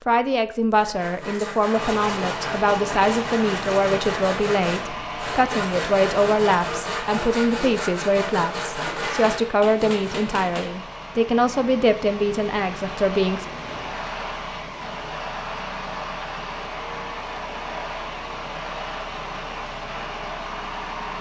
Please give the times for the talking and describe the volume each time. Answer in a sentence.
The talking can be heard from 0.1 to 13.4 s, at a steady volume.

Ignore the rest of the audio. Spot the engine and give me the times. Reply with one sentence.
You can hear the engine from 1.7 to 21.1 s.